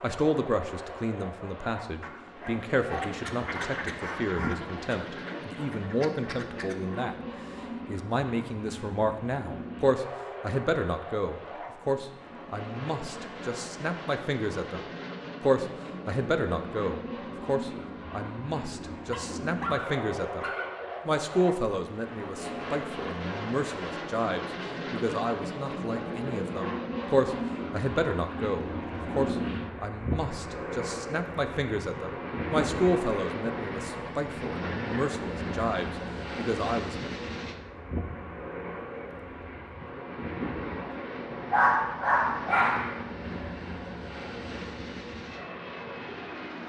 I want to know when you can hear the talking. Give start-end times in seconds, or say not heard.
0.0-7.2, 7.8-37.1.